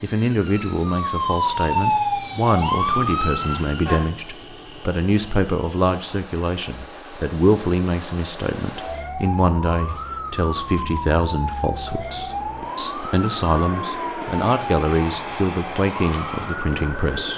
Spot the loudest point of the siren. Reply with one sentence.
The volume of the siren peaks at 2 seconds.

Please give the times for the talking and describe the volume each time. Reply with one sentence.
You can hear the talking from 0.0 to 17.3 s, at a steady volume.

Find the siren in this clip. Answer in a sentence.
You can hear the siren from 0.0 to 4.0 s and from 8.8 to 17.3 s.